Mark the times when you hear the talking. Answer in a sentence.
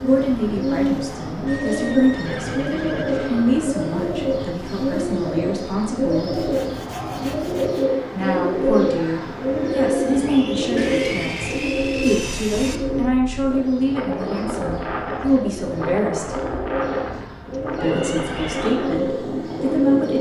The talking can be heard from 0.0 to 6.4 s, from 8.1 to 16.4 s and from 17.8 to 20.1 s.